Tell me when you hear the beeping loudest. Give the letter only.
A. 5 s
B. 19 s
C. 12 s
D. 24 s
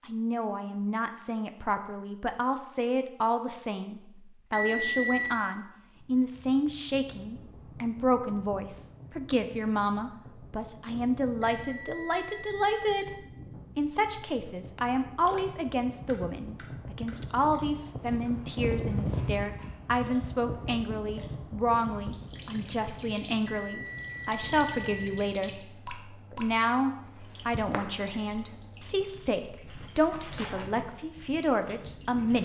A.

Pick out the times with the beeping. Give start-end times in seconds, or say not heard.
4.5-5.5, 11.4-13.1, 23.4-25.1.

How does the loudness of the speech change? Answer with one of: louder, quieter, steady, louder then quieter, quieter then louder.
steady.